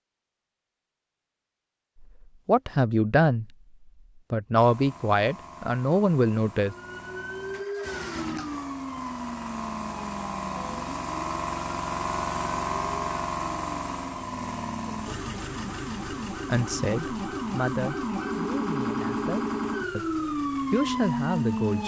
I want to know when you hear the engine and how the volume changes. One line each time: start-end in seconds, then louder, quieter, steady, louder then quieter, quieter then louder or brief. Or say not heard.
4.5-21.8 louder then quieter.